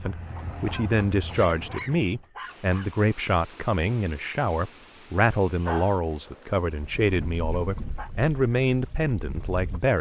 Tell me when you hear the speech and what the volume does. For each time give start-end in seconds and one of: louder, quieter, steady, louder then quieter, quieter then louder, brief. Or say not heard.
0.0-9.9 steady.